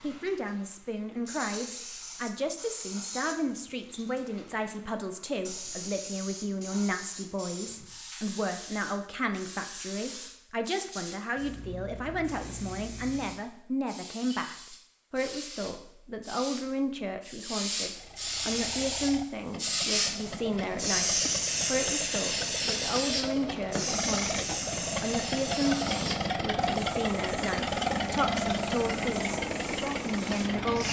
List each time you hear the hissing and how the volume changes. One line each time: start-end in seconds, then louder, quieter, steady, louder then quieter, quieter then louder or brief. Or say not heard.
0.0-30.8 louder then quieter.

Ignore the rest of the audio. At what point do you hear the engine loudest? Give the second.
28 s.